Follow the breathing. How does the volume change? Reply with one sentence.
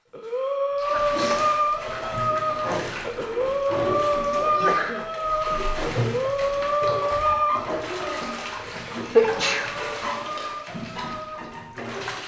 The loudness of the breathing goes down.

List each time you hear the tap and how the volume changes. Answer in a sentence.
The tap can be heard from 0.2 to 12.2 s, at a steady volume.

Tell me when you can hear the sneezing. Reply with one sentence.
You can hear the sneezing from 0.9 to 1.5 s, from 4.4 to 5.0 s and from 9.2 to 9.7 s.